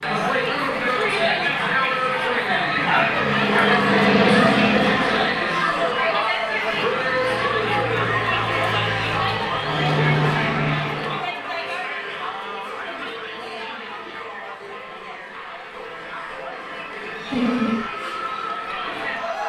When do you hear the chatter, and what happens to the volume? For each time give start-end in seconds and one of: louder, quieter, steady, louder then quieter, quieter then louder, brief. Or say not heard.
0.0-19.4 quieter.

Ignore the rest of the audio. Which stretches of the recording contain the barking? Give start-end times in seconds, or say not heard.
2.7-3.8, 17.3-17.9.